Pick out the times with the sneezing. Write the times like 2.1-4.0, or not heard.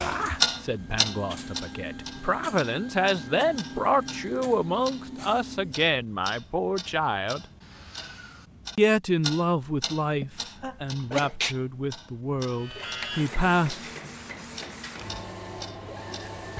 10.2-11.6.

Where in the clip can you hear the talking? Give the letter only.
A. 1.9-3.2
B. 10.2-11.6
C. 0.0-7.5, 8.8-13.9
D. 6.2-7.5
C.